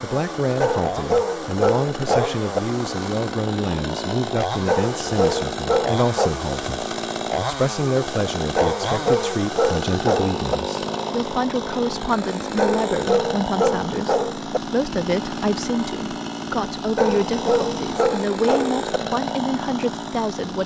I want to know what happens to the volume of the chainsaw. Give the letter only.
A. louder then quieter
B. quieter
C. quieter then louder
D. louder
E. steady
E.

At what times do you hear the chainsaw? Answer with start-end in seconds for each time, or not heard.
0.0-20.6.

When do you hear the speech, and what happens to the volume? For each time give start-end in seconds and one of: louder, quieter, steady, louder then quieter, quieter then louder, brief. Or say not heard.
0.0-20.6 steady.